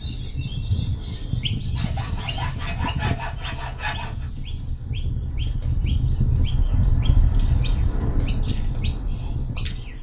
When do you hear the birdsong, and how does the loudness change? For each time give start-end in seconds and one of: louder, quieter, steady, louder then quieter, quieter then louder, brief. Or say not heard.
0.0-9.9 quieter.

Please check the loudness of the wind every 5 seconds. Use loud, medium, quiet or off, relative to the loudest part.
medium, loud.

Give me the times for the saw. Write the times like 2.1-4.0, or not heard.
1.8-4.3.